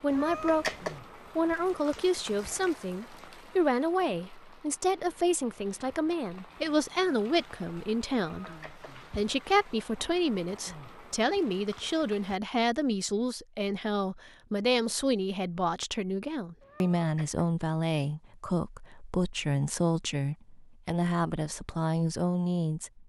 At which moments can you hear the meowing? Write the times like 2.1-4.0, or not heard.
0.1-1.0, 8.2-8.9, 16.6-17.4.